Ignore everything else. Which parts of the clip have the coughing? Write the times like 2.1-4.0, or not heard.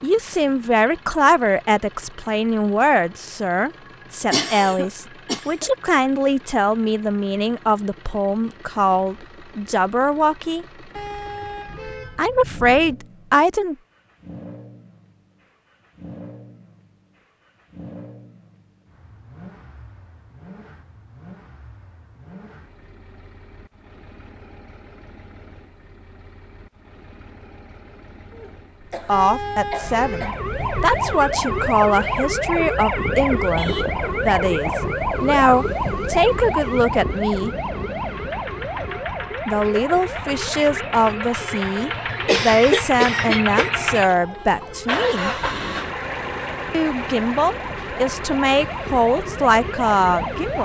4.3-5.9, 28.3-30.4, 42.2-43.7.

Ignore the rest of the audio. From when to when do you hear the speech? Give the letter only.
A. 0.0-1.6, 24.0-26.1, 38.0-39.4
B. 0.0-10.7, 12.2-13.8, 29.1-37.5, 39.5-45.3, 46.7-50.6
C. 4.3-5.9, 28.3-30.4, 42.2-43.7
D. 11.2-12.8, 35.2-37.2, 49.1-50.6
B.